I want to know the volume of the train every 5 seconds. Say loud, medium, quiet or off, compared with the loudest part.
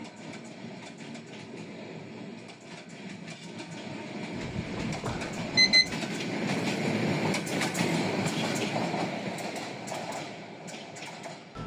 medium, loud, medium.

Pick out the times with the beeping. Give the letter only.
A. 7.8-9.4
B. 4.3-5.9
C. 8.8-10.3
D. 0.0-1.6
B.